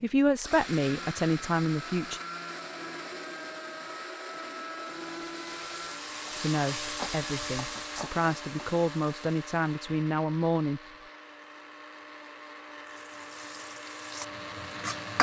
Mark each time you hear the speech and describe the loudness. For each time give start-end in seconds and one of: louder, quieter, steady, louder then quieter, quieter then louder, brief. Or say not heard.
0.0-2.2 brief
6.3-10.8 louder.